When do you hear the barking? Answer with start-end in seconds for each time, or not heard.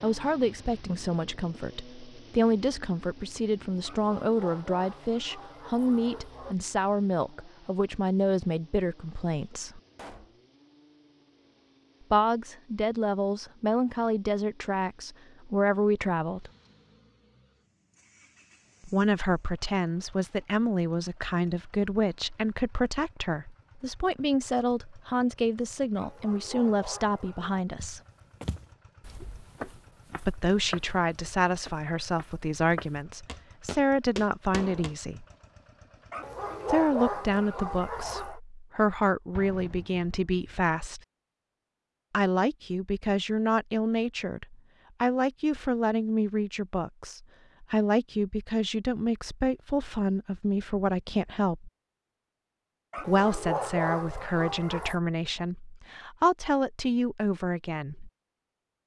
3.8-6.5, 25.9-27.6, 36.1-38.4, 52.9-55.0.